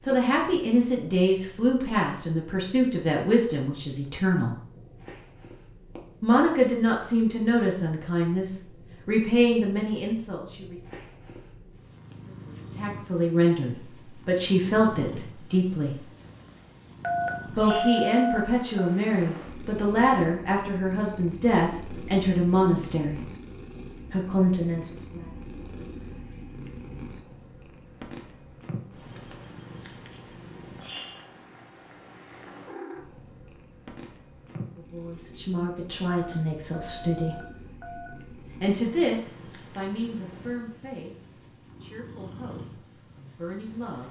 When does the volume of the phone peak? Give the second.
18 s.